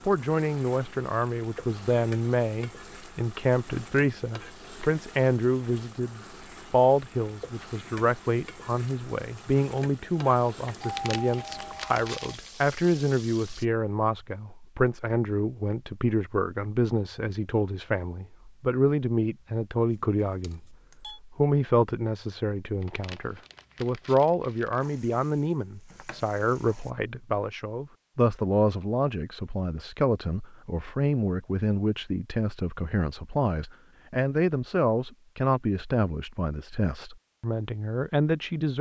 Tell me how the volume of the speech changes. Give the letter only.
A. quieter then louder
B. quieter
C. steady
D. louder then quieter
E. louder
C.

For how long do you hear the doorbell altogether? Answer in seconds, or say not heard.
3 s.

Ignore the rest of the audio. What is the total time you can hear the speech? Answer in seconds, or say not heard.
39 s.